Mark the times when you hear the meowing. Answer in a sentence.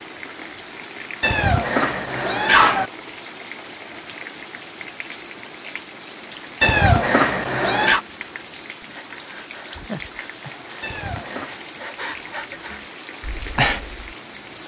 The meowing can be heard from 1.2 to 2.9 s, from 6.6 to 8.0 s and from 10.8 to 11.6 s.